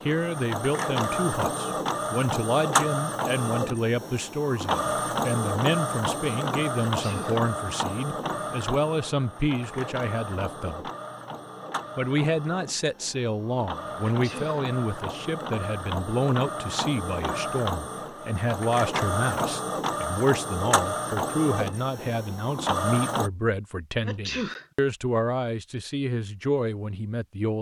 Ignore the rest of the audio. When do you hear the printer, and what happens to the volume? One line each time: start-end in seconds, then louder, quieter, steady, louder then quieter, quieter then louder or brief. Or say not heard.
0.0-23.3 quieter then louder.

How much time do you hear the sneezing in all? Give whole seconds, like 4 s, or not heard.
2 s.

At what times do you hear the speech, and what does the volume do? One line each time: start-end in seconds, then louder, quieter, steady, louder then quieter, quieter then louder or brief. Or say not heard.
0.1-10.9 steady
11.9-27.5 steady.